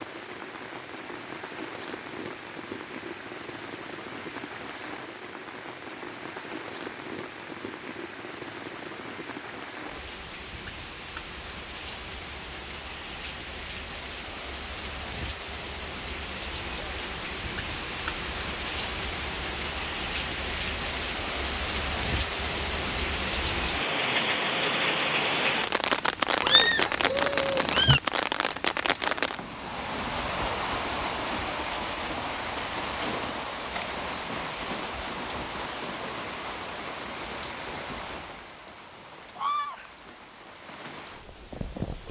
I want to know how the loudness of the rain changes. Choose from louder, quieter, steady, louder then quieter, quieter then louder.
louder then quieter.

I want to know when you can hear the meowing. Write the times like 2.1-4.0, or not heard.
26.4-28.0.